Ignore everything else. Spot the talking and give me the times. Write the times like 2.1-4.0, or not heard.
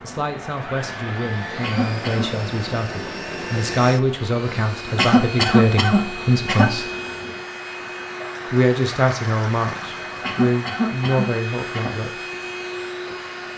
0.0-6.9, 8.5-12.2.